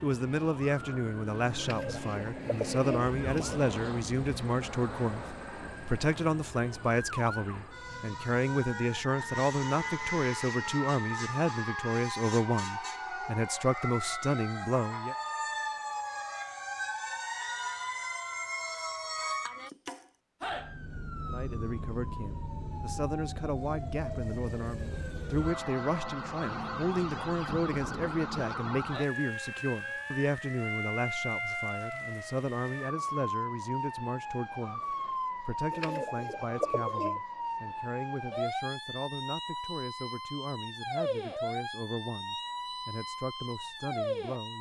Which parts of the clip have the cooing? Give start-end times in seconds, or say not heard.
1.6-3.5, 35.7-37.2.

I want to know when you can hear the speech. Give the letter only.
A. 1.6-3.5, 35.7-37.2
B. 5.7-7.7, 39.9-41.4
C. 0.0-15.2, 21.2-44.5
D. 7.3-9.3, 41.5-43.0
C.